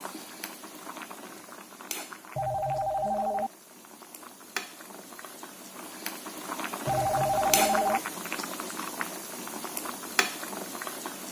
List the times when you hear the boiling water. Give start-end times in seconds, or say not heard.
0.0-11.2.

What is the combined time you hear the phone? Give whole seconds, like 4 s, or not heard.
2 s.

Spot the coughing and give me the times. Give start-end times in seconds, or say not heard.
not heard.